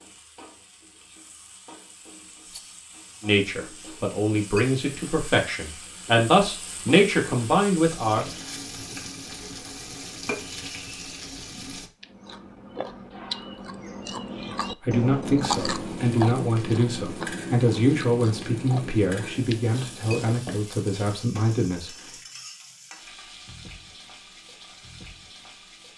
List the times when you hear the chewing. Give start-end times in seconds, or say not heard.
12.0-20.1.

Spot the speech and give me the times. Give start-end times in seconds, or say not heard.
3.2-8.3, 14.8-21.9.